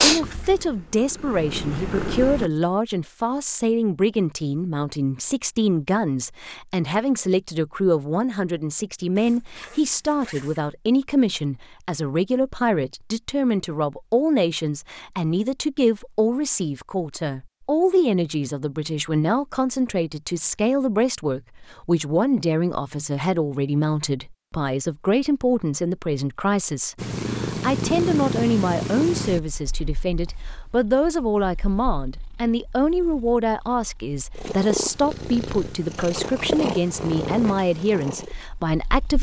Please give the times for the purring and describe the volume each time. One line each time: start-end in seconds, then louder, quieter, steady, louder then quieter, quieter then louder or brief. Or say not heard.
0.0-2.5 brief
26.9-39.1 quieter then louder.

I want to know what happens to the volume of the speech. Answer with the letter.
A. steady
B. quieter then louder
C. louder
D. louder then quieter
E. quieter
A.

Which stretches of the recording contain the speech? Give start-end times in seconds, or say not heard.
0.0-39.1.